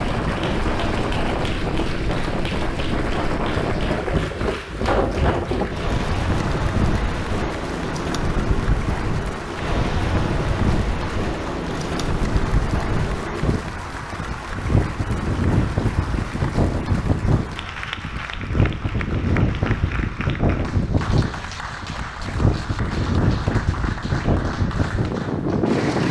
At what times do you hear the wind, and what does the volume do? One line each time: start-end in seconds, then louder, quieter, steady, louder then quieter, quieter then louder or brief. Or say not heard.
0.0-26.0 steady.